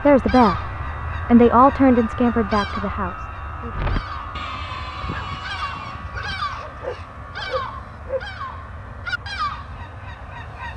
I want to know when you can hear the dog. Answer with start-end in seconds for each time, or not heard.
3.7-8.2.